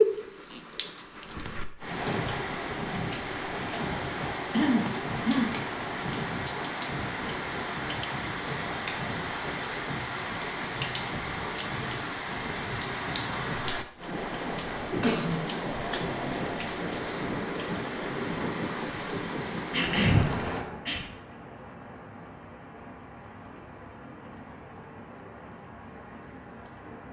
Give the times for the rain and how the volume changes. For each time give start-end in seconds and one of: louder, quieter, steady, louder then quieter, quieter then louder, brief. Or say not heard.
0.0-27.0 quieter.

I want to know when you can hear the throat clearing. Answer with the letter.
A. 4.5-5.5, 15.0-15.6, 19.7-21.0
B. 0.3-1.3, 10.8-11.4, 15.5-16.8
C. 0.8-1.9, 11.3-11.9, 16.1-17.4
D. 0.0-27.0
A.